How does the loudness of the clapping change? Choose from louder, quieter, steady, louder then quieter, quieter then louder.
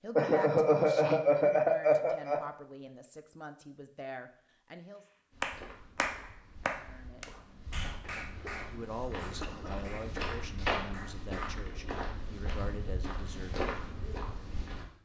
quieter.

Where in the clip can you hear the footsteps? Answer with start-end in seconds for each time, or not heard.
5.3-14.8.